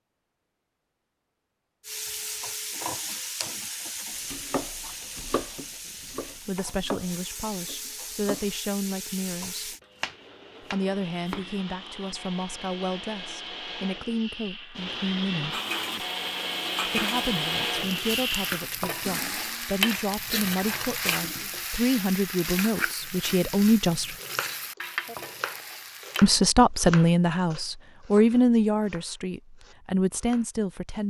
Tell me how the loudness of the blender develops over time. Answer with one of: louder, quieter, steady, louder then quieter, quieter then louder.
louder.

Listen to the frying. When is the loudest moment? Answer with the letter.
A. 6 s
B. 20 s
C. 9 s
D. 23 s
B.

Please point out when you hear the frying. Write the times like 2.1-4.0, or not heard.
1.9-9.8, 15.5-26.2.